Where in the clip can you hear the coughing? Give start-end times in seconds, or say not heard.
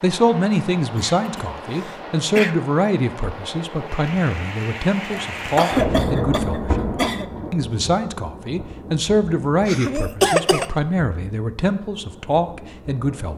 0.9-2.5, 5.3-7.3, 9.7-10.7.